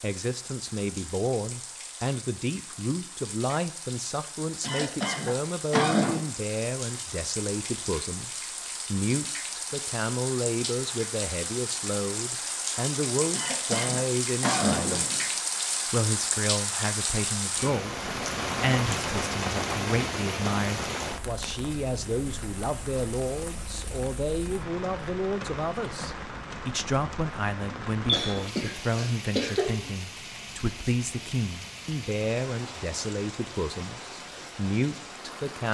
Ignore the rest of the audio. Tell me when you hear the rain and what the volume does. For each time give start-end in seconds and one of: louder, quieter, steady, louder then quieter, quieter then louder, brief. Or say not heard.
0.0-35.6 louder then quieter.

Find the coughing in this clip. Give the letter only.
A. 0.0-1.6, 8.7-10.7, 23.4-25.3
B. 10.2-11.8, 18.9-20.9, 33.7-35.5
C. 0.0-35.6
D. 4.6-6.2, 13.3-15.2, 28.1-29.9
D.